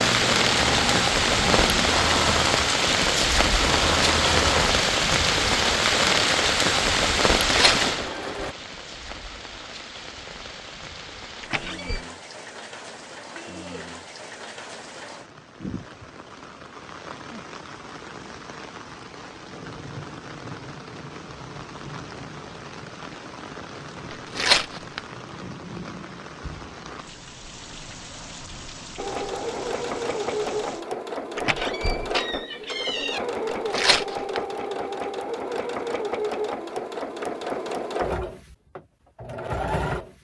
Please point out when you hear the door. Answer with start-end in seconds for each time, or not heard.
11.4-12.1, 31.4-33.2.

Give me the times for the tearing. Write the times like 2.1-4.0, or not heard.
7.5-7.9, 24.4-25.0, 33.7-34.4.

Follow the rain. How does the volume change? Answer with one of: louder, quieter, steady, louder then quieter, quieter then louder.
quieter.